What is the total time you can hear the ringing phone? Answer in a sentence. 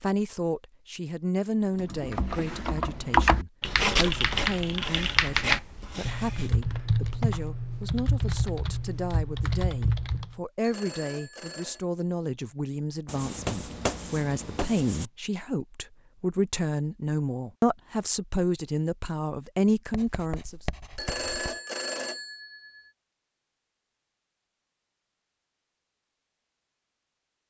You can hear the ringing phone for 3 seconds altogether.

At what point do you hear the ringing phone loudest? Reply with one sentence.
The volume of the ringing phone peaks at 21 seconds.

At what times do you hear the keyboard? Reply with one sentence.
The keyboard can be heard from 1.8 to 10.3 s.